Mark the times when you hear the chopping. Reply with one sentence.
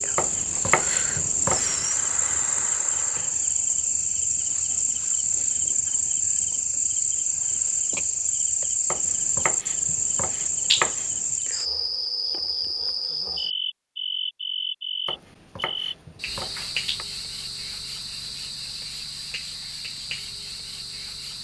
You can hear the chopping from 0.1 to 1.9 s, from 8.9 to 11.3 s and from 15.1 to 17.1 s.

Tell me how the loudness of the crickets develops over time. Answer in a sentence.
The loudness of the crickets goes down.